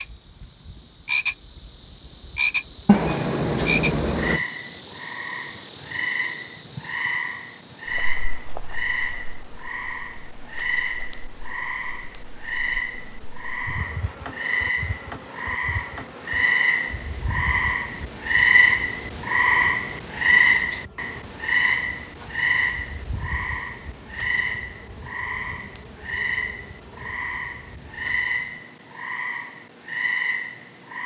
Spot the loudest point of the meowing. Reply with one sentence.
The loudest moment of the meowing is at 3 seconds.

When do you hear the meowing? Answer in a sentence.
You can hear the meowing from 2.9 to 4.4 s.